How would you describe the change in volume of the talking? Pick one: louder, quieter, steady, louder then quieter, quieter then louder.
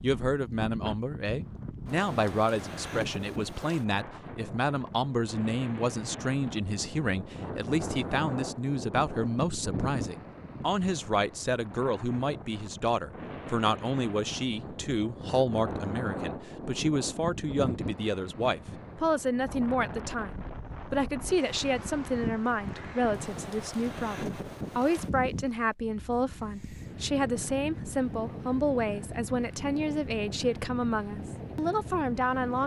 steady.